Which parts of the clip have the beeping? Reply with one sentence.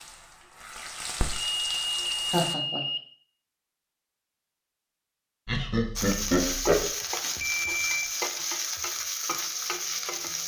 You can hear the beeping from 1.4 to 3.0 s and from 7.4 to 8.1 s.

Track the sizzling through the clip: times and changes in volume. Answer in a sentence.
The sizzling can be heard briefly from 0.0 to 2.5 s; and from 6.0 to 10.4 s, at a steady volume.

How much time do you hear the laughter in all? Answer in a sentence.
You can hear the laughter for 2 seconds altogether.